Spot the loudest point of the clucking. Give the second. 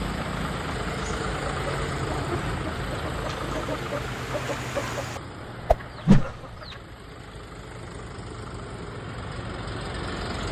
6 s.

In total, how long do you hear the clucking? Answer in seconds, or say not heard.
7 s.